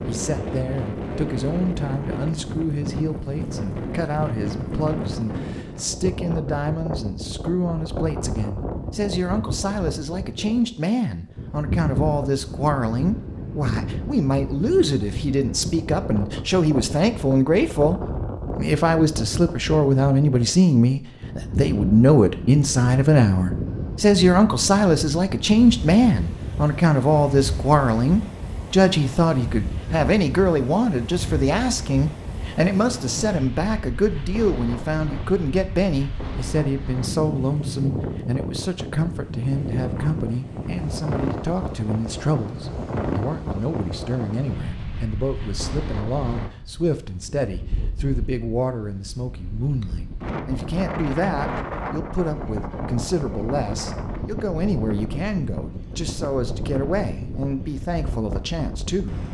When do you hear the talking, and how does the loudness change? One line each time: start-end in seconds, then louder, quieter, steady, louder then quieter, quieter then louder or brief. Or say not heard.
0.1-59.2 louder then quieter.